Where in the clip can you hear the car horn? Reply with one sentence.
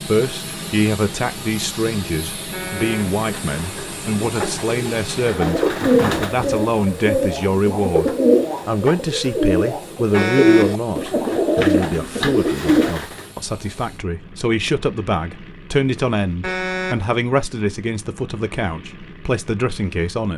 The car horn can be heard from 2.5 to 3.1 s, from 10.1 to 10.8 s and from 16.4 to 17.1 s.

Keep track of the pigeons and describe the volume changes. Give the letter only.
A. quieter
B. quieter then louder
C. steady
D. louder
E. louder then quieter
D.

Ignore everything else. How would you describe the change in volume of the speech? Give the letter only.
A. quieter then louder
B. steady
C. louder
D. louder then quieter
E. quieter
B.